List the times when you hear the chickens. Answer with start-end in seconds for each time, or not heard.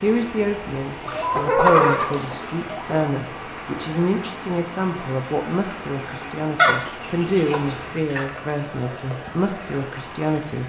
1.1-3.1, 6.5-8.2.